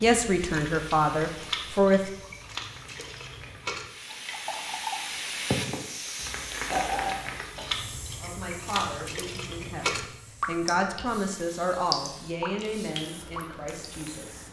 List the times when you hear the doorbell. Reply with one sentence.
You can't hear the doorbell here.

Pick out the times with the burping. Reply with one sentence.
You can hear the burping from 6.7 to 7.8 s.